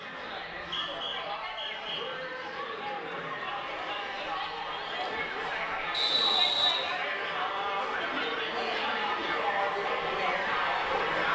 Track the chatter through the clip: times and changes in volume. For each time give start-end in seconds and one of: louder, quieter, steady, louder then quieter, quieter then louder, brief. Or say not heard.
0.0-11.3 louder.